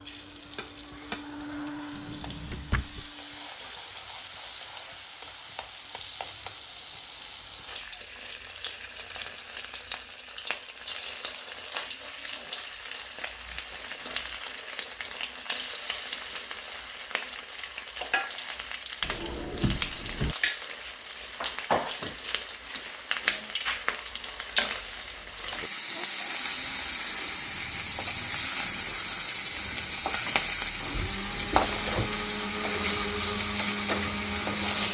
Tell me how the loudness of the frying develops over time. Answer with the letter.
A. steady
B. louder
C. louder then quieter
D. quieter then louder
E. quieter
B.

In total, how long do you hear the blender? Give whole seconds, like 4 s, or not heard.
12 s.